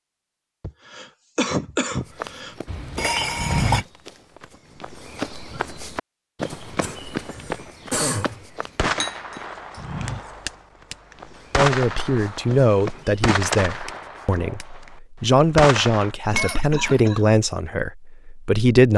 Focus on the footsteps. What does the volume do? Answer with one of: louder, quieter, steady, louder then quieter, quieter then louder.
quieter.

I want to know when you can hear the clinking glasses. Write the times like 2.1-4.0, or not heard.
2.6-3.9, 9.0-10.0, 16.4-17.0.